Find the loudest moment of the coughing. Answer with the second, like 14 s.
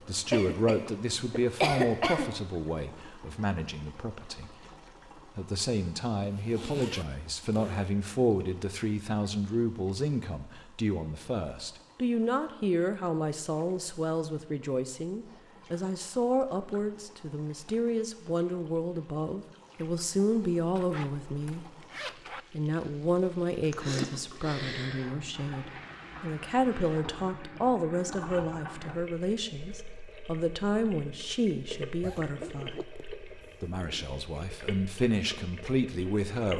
2 s.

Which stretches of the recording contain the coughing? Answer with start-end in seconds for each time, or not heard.
0.3-2.3, 23.6-25.1.